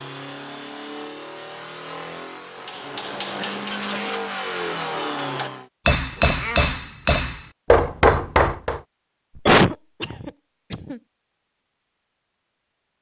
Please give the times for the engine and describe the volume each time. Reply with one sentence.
You can hear the engine from 0.0 to 5.7 s, getting louder.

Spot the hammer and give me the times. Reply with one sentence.
You can hear the hammer from 2.6 to 8.8 s.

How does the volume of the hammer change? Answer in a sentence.
The volume of the hammer goes down, then up.